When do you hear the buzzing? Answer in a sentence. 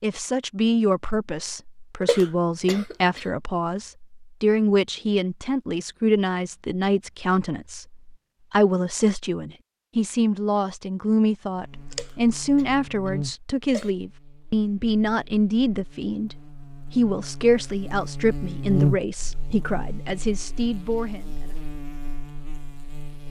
You can hear the buzzing from 11.6 to 23.2 s.